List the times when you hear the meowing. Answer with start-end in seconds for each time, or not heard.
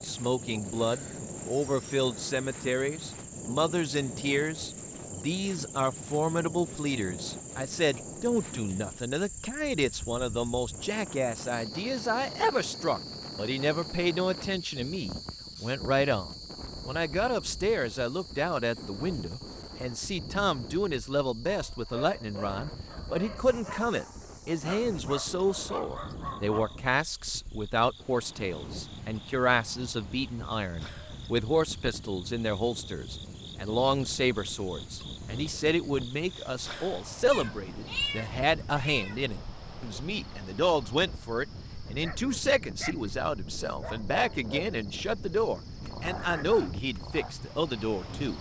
37.3-39.1.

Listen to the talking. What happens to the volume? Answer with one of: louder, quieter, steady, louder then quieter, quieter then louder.
steady.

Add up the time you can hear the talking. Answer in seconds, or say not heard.
48 s.